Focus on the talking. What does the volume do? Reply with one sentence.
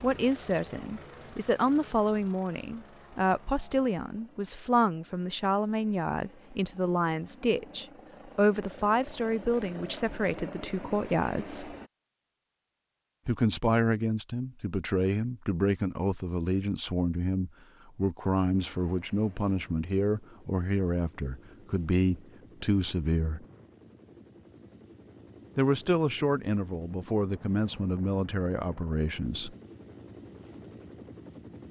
The loudness of the talking stays about the same.